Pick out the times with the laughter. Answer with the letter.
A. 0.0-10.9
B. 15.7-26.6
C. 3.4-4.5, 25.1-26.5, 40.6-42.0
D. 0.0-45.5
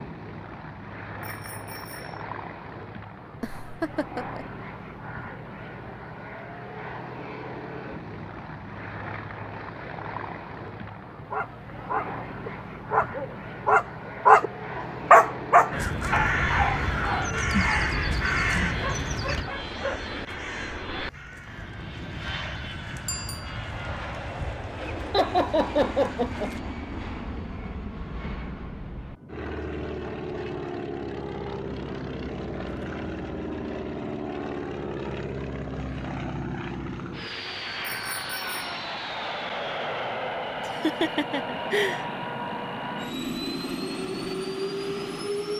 C.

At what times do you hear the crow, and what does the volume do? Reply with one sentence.
You can hear the crow from 15.7 to 26.6 s, getting quieter.